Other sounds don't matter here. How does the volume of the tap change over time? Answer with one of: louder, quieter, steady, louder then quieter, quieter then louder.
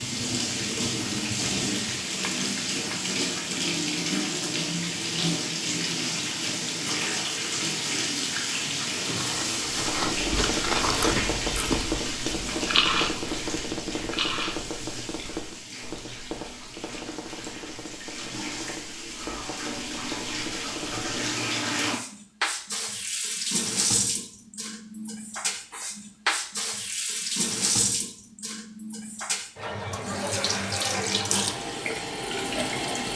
quieter then louder.